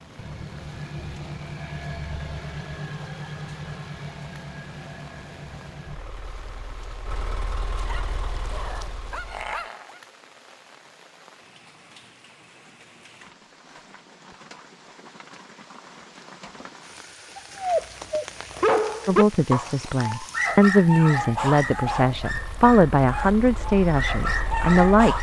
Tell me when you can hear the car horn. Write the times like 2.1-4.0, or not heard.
not heard.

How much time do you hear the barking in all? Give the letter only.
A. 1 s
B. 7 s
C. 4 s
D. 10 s
D.